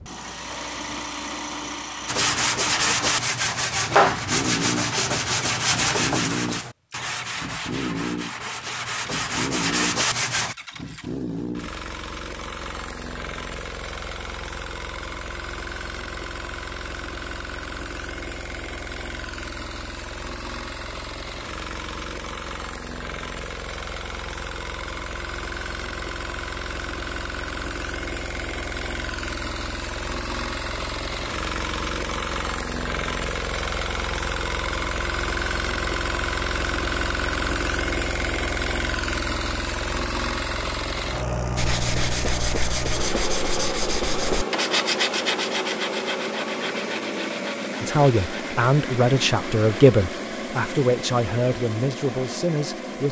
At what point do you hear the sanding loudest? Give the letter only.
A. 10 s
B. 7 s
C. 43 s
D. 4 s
D.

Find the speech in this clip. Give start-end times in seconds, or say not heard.
47.8-53.0.